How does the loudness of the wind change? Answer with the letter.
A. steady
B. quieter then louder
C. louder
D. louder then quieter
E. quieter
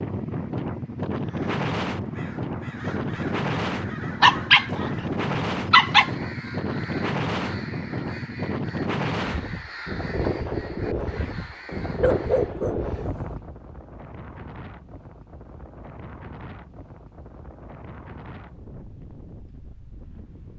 E.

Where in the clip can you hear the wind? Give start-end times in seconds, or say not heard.
0.0-20.5.